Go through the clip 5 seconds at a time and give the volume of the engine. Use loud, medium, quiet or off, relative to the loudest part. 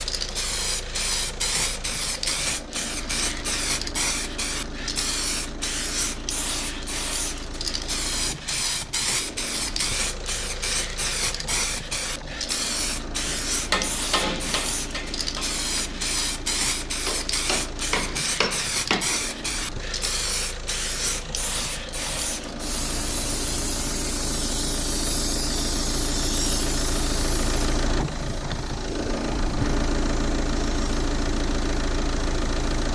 medium, medium, medium, medium, medium, loud, loud.